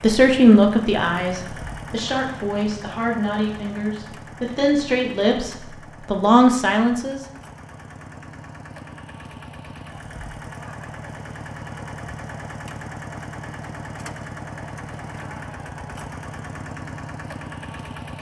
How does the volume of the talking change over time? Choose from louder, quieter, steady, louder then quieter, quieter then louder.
quieter then louder.